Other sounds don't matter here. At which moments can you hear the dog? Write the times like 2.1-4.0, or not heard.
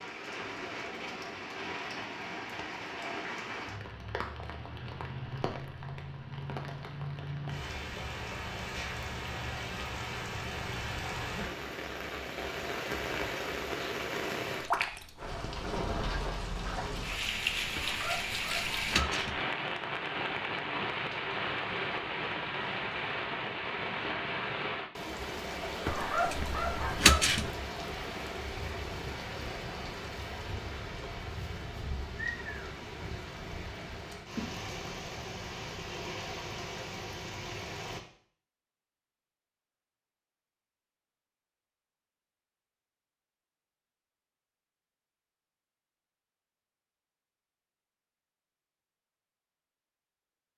17.8-19.4, 25.9-27.5.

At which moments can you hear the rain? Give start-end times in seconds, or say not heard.
0.0-38.0.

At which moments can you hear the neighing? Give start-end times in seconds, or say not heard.
not heard.